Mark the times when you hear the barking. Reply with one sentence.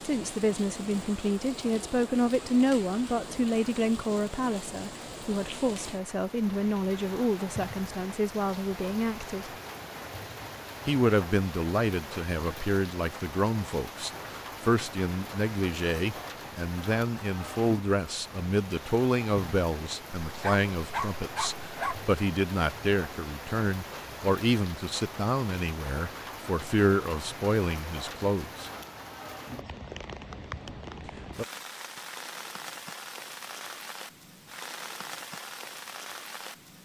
The barking can be heard from 20.2 to 22.1 s.